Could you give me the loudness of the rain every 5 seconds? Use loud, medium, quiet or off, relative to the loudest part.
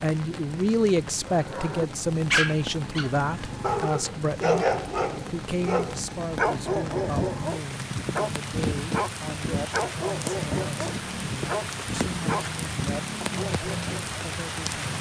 medium, loud, loud.